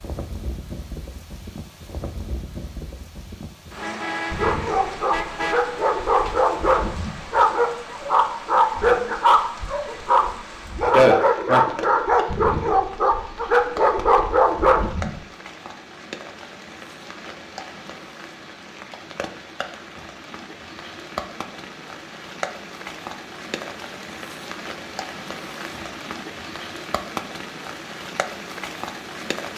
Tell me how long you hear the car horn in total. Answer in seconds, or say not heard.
2 s.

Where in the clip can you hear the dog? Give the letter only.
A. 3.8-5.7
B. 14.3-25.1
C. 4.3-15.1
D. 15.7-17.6
C.